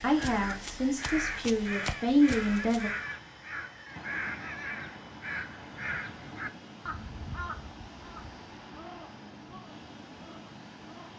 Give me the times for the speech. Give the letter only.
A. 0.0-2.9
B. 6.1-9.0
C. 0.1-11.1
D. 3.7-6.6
A.